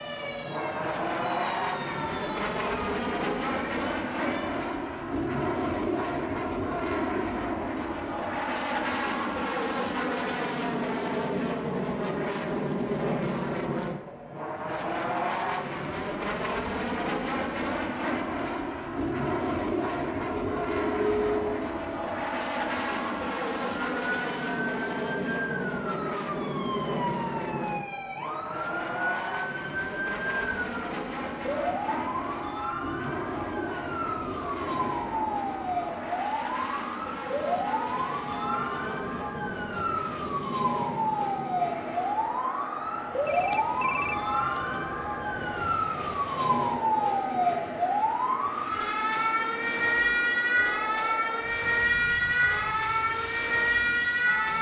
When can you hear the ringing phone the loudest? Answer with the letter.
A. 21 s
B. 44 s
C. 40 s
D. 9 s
A.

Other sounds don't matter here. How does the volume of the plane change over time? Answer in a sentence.
The loudness of the plane goes down.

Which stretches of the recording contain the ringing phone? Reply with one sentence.
The ringing phone can be heard from 20.3 to 21.7 s and from 43.2 to 44.7 s.